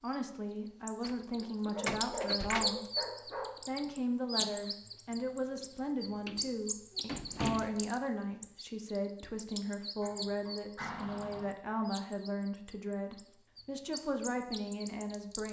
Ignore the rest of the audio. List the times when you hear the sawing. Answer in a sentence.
The sawing can't be heard in this clip.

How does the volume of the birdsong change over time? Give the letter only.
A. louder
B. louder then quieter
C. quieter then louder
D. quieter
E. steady
D.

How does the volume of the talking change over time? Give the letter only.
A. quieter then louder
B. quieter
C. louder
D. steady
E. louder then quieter
D.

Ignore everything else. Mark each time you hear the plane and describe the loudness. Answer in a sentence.
You can't hear the plane here.